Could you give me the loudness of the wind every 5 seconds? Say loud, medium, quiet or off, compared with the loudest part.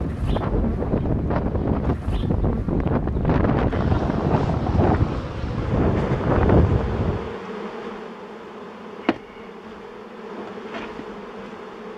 loud, loud, off.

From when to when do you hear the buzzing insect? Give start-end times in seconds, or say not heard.
0.0-11.9.